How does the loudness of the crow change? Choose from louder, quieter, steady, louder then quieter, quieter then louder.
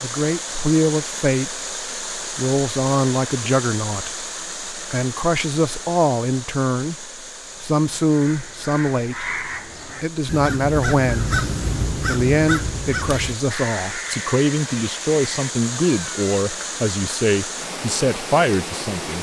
louder then quieter.